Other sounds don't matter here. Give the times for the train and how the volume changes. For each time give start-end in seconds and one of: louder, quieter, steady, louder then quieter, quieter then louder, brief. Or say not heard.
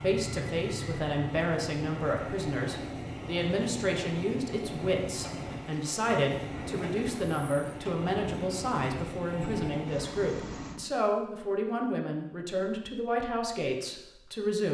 0.0-10.8 steady.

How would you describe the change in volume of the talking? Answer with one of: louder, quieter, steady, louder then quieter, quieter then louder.
steady.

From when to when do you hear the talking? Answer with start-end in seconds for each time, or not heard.
0.0-14.6.